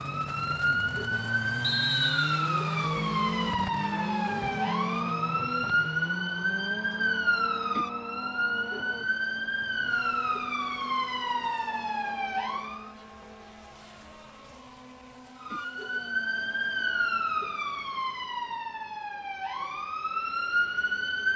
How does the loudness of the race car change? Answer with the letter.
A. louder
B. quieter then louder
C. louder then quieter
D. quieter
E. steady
D.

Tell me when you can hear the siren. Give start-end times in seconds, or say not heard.
0.0-12.9, 15.4-21.3.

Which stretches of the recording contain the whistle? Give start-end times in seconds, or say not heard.
1.6-2.5.